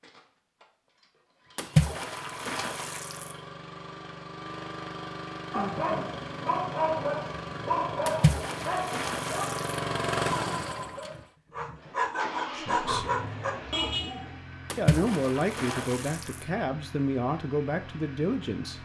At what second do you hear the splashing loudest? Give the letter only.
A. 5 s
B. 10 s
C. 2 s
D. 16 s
C.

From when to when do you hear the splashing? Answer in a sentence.
You can hear the splashing from 1.6 to 3.4 s, from 8.1 to 9.8 s and from 14.7 to 16.4 s.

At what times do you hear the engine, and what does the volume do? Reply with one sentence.
You can hear the engine from 0.0 to 18.7 s, getting louder then quieter.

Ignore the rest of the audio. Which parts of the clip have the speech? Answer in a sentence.
You can hear the speech from 12.5 to 13.1 s and from 14.8 to 18.7 s.